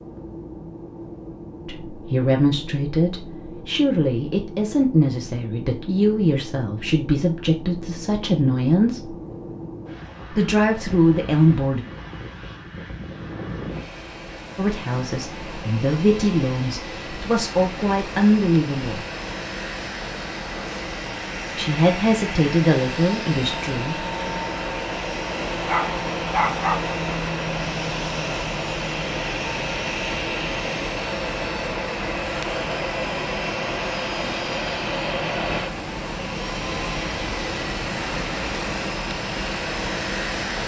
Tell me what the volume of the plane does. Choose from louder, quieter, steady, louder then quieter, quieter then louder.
louder.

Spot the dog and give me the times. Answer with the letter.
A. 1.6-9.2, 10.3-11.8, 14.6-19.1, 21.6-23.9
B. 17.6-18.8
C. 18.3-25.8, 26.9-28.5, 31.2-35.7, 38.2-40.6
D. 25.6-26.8
D.